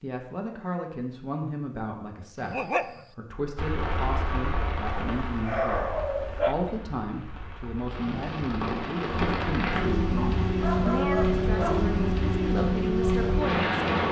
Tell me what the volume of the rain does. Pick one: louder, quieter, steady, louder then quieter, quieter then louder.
quieter then louder.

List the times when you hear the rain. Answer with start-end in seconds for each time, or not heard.
3.5-14.0.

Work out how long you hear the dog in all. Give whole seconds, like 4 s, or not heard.
4 s.